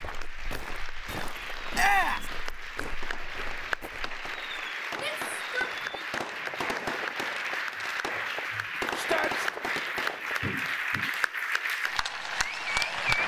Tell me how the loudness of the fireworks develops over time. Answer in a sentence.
The loudness of the fireworks goes up.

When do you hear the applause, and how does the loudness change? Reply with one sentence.
The applause can be heard from 0.0 to 13.2 s, getting louder.